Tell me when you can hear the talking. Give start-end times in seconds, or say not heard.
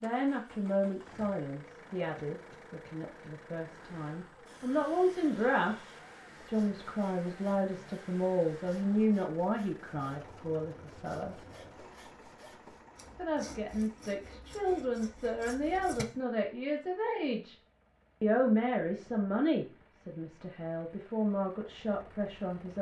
0.0-11.3, 13.2-17.6, 18.2-22.7.